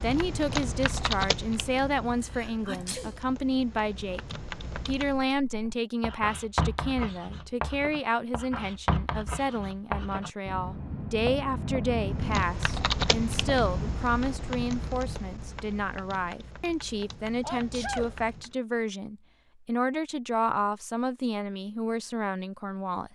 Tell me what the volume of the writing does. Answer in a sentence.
The loudness of the writing stays about the same.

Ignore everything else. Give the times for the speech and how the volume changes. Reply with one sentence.
You can hear the speech from 0.0 to 23.1 s, at a steady volume.